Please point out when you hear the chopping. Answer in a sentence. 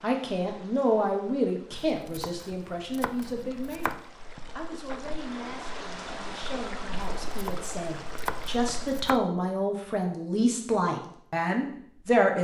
The chopping can be heard from 1.7 to 4.0 s and from 7.0 to 9.2 s.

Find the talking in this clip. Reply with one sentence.
The talking can be heard from 0.0 to 4.0 s and from 4.5 to 12.3 s.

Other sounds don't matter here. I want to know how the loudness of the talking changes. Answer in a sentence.
The volume of the talking goes down, then up.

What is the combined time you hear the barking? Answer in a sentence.
The barking can't be heard in this clip.